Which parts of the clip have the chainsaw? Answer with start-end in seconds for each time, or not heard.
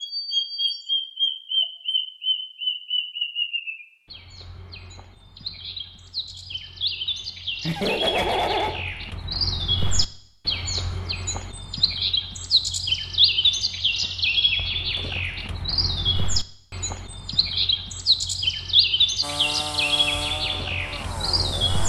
19.2-21.8.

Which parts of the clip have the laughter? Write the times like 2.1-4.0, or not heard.
7.6-8.8.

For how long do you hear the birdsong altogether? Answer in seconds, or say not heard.
22 s.